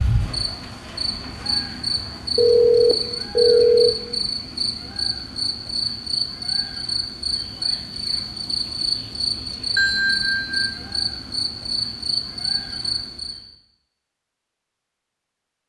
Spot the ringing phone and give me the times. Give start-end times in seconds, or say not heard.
2.4-4.0, 9.8-10.7.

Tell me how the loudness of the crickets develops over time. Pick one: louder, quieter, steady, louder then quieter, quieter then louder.
steady.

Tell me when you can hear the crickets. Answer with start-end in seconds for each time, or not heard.
0.0-13.4.